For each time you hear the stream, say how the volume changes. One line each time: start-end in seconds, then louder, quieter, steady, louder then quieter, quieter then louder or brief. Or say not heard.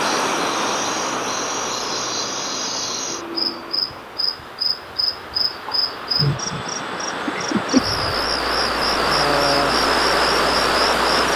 0.0-11.3 quieter then louder.